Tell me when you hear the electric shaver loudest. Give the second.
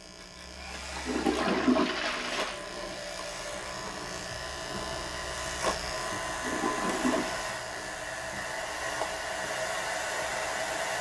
6 s.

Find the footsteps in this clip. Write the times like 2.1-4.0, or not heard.
not heard.